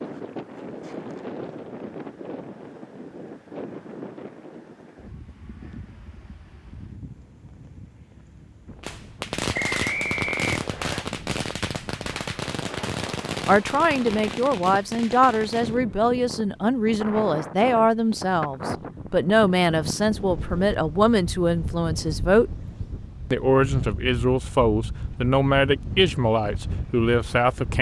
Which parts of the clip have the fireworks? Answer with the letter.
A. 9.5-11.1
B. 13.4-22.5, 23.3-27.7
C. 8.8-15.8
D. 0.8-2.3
C.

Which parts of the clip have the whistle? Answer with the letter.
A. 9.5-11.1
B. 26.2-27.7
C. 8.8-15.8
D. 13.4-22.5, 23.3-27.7
A.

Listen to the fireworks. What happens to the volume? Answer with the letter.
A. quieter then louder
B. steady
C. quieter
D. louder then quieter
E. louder
C.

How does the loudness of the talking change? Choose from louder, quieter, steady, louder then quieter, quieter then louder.
steady.